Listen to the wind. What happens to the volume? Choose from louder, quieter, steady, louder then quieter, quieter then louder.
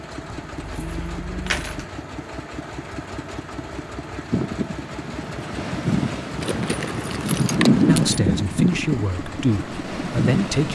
louder then quieter.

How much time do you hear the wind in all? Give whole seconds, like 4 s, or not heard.
6 s.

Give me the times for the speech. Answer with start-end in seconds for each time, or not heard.
7.8-10.6.